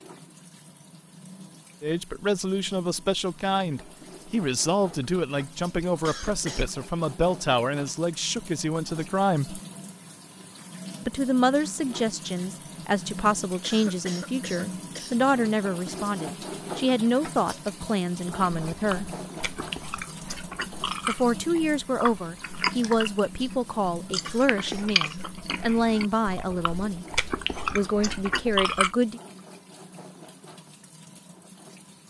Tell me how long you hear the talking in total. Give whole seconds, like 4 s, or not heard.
23 s.